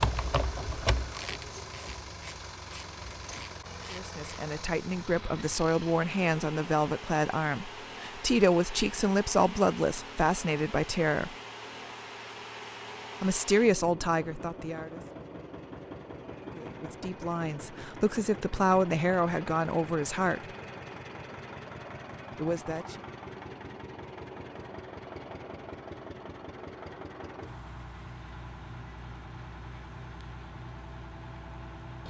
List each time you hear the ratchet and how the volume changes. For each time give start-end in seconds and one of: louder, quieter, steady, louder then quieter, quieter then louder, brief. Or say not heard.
0.0-4.2 quieter.